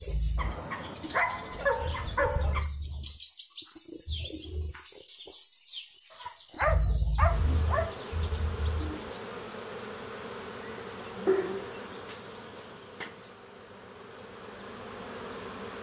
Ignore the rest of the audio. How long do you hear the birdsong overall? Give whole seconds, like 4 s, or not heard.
9 s.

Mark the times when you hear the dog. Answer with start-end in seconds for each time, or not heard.
0.3-2.6, 6.1-7.9, 11.2-13.1.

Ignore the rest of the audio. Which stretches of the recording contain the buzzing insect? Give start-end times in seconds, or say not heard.
7.2-15.7.